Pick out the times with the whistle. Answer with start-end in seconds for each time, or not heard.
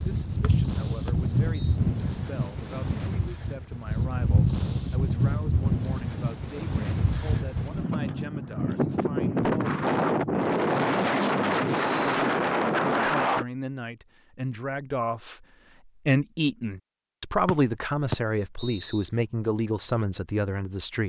0.4-1.8, 17.4-19.1.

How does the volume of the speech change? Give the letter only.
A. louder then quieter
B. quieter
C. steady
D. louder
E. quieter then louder
D.